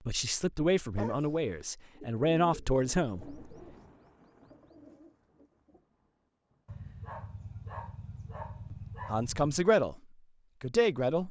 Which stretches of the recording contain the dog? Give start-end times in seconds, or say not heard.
0.9-1.6, 6.7-9.5.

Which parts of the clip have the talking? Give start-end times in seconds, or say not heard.
0.1-3.4, 9.1-9.9, 10.6-11.2.